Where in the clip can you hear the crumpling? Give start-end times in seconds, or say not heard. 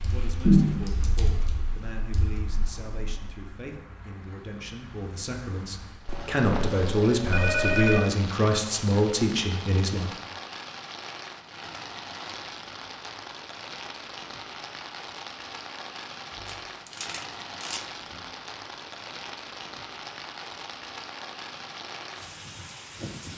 16.3-18.3.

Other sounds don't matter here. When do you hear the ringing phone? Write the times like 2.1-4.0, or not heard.
6.0-8.1.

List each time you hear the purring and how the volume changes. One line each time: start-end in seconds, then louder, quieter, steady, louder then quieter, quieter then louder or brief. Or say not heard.
not heard.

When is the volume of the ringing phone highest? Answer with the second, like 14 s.
8 s.